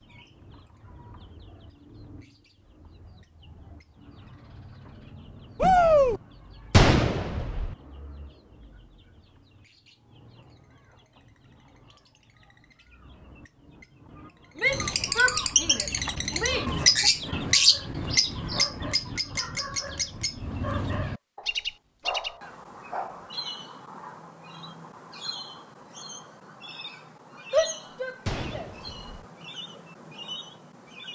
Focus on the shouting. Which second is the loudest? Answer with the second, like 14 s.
6 s.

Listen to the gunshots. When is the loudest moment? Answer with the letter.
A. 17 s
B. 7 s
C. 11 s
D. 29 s
B.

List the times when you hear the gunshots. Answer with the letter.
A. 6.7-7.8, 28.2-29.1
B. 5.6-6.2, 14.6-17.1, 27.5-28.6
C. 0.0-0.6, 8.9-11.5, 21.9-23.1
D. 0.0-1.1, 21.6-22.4
A.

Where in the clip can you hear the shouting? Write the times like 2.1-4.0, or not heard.
5.6-6.2, 14.6-17.1, 27.5-28.6.